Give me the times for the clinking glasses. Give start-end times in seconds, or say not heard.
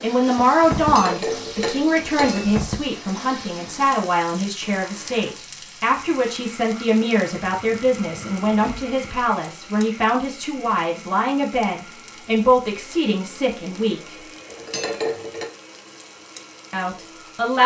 0.8-2.5, 14.4-15.5.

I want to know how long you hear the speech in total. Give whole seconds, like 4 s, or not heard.
15 s.